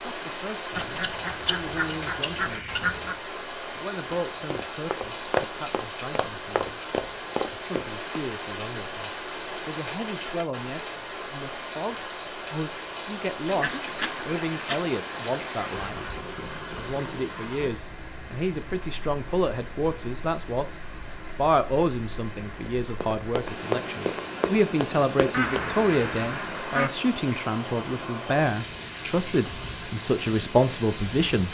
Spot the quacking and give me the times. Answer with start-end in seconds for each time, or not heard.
0.8-3.1, 13.4-16.2, 25.3-26.9.